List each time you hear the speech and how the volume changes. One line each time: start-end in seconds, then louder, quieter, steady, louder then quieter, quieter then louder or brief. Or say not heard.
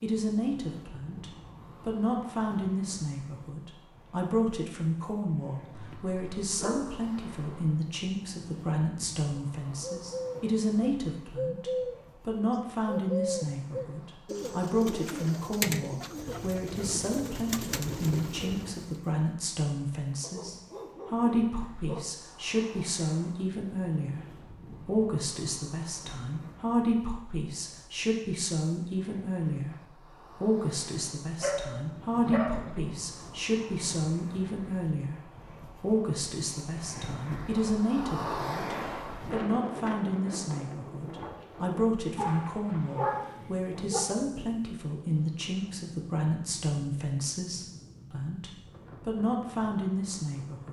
0.0-50.6 steady.